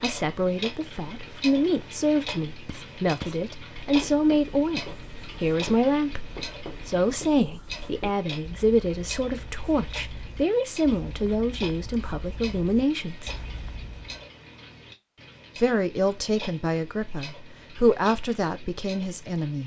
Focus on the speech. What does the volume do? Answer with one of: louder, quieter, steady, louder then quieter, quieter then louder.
steady.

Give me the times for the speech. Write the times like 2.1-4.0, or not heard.
0.0-13.3, 15.6-19.6.